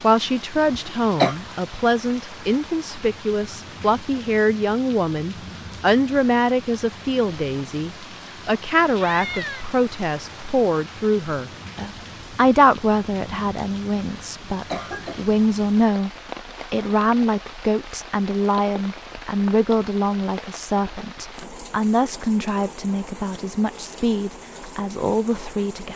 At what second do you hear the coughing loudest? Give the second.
1 s.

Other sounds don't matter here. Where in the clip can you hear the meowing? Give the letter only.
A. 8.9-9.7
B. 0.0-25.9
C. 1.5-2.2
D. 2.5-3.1
A.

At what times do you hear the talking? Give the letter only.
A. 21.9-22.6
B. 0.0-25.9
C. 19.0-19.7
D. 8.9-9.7
B.